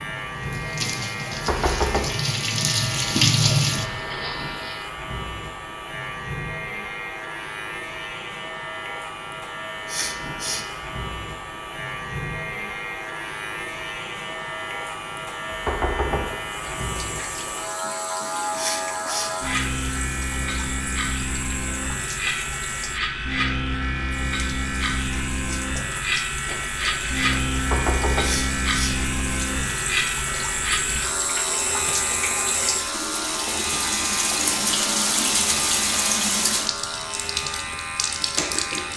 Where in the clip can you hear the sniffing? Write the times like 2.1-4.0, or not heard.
9.8-10.7, 18.6-19.4, 28.2-29.0.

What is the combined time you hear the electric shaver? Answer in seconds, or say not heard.
39 s.